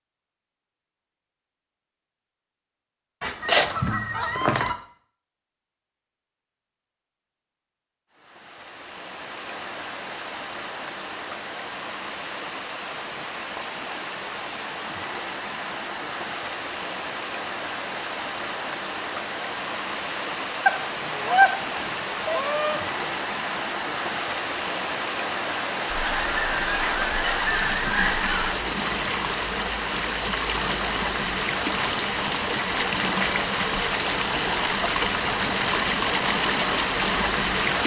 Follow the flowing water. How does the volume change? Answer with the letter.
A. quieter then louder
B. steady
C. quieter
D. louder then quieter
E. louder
E.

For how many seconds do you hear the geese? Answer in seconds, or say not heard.
7 s.